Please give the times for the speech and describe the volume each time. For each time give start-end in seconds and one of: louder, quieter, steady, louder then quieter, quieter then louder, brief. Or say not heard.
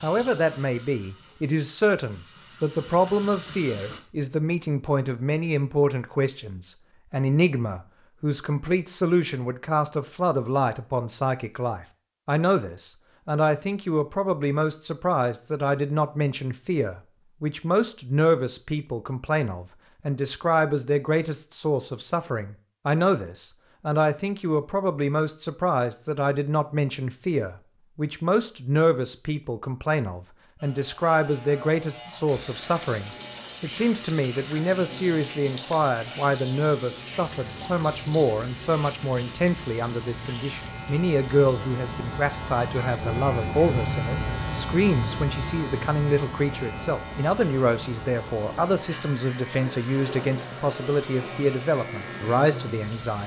0.0-53.2 steady.